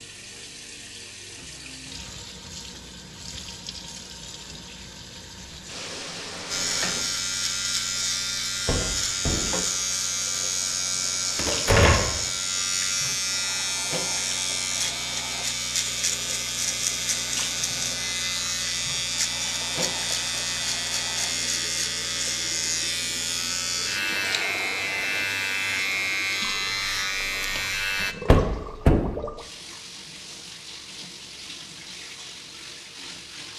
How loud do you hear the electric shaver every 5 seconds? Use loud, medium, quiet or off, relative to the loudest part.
off, loud, loud, loud, loud, loud, off.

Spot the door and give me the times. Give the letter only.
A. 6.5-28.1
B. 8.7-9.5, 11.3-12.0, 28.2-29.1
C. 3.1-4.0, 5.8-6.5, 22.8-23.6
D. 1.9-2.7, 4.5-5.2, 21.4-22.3
B.